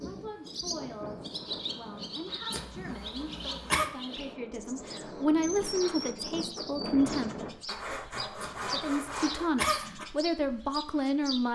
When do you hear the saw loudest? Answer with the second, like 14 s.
9 s.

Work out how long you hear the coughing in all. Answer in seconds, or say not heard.
3 s.